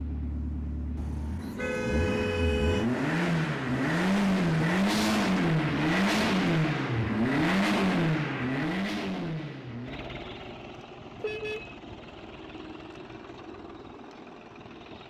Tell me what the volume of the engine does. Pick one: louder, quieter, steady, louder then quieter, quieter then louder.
louder then quieter.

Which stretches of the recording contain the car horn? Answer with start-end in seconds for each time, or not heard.
0.9-2.9, 11.2-11.8.